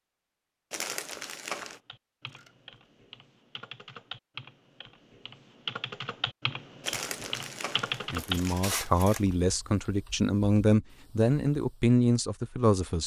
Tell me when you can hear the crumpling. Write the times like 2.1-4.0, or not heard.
0.7-1.8, 6.8-8.8.